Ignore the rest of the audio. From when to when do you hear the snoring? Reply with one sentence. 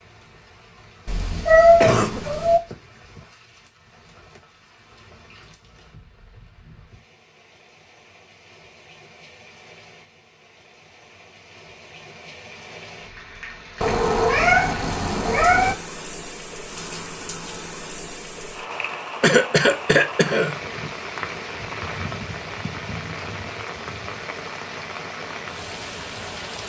The snoring can't be heard in this clip.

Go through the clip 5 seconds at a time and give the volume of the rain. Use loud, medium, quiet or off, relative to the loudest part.
quiet, quiet, medium, loud, loud, loud.